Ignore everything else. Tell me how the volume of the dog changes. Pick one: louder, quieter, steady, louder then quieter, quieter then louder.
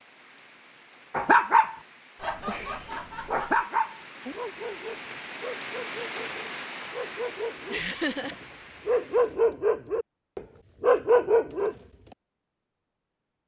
quieter then louder.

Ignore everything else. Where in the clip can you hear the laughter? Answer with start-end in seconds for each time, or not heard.
2.1-3.6, 7.7-8.3.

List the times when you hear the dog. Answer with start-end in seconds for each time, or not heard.
1.1-11.8.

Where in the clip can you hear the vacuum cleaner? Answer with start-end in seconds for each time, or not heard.
not heard.